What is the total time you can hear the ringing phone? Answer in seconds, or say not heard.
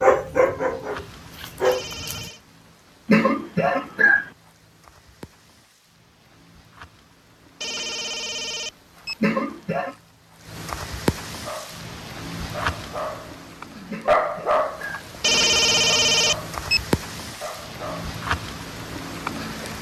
4 s.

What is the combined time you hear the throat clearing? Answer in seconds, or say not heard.
3 s.